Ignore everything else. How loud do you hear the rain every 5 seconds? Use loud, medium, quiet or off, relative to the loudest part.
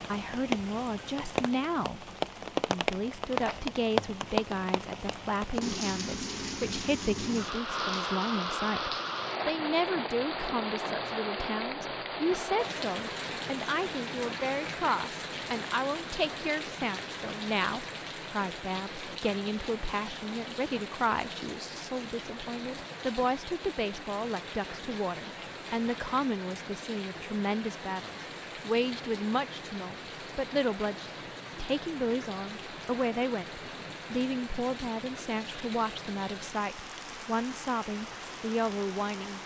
loud, loud, loud, medium, medium, medium, medium, medium.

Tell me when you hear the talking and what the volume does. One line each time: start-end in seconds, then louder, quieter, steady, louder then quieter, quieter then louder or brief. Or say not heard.
0.1-39.4 steady.